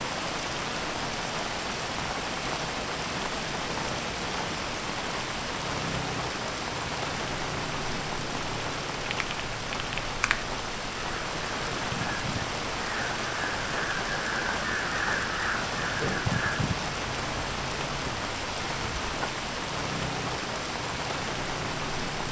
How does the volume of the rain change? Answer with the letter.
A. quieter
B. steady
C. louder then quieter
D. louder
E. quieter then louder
B.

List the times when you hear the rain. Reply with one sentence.
The rain can be heard from 0.0 to 22.2 s.